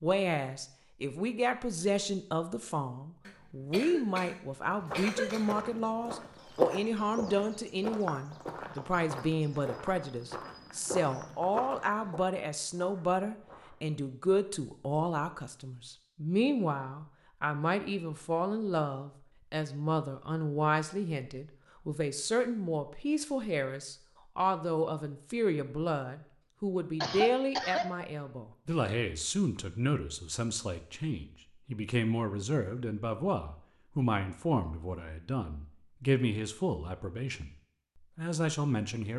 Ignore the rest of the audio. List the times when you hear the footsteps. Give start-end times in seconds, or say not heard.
4.8-13.8.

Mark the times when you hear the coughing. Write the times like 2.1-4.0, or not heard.
3.2-5.7, 27.0-27.9.